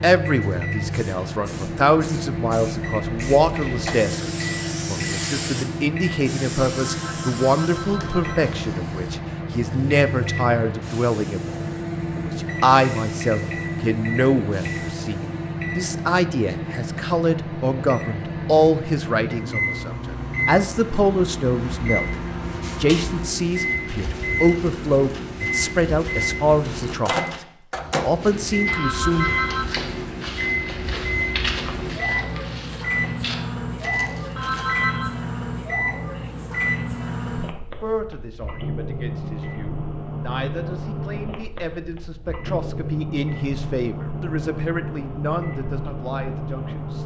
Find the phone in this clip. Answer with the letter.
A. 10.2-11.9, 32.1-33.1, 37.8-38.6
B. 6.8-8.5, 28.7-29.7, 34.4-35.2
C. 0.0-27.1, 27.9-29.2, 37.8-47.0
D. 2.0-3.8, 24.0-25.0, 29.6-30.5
B.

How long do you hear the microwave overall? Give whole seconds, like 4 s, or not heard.
47 s.